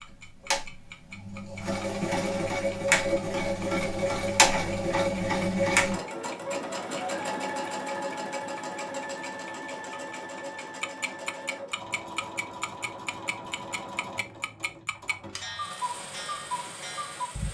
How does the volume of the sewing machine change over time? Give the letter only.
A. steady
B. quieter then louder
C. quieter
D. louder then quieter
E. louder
C.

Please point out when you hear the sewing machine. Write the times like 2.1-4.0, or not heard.
0.0-17.4.